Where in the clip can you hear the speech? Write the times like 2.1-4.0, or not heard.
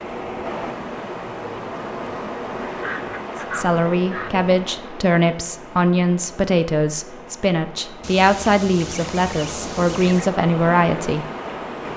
3.5-11.2.